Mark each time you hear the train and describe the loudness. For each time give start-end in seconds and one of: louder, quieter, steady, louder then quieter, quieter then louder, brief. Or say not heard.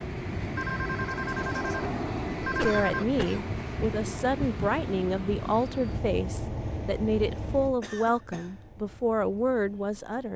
0.0-10.3 quieter.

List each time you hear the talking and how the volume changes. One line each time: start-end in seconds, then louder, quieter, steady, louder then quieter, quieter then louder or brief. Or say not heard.
2.5-10.3 steady.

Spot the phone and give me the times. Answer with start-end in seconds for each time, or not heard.
0.6-3.0.